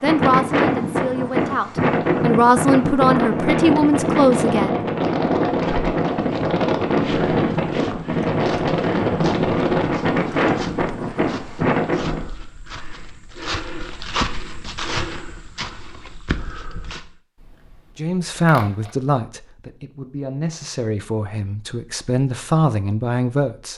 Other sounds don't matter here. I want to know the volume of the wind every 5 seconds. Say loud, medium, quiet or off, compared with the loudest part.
loud, loud, loud, off, off.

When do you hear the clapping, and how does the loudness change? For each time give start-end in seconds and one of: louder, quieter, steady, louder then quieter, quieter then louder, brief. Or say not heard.
not heard.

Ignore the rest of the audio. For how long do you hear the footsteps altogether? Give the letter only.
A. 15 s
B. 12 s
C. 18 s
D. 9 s
B.